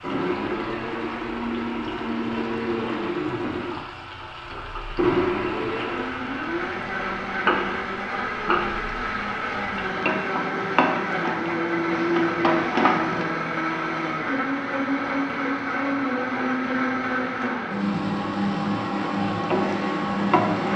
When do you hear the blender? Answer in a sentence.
You can hear the blender from 0.0 to 20.7 s.